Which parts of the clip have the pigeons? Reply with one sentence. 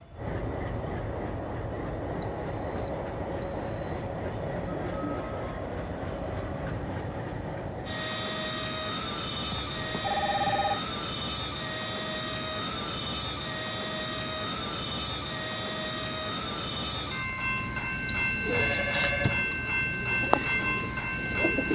The pigeons can be heard from 18.4 to 21.7 s.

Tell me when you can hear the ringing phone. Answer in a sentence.
The ringing phone can be heard from 4.7 to 5.7 s, from 9.5 to 10.8 s and from 18.4 to 19.4 s.